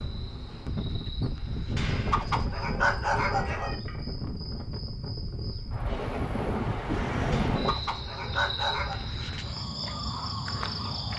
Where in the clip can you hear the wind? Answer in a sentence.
The wind can be heard from 0.0 to 7.8 s.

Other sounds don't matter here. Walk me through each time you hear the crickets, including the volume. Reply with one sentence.
The crickets can be heard from 0.0 to 11.1 s, getting louder.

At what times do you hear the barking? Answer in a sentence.
The barking can be heard from 1.8 to 3.8 s and from 7.3 to 9.0 s.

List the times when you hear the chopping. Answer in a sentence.
The chopping can't be heard in this clip.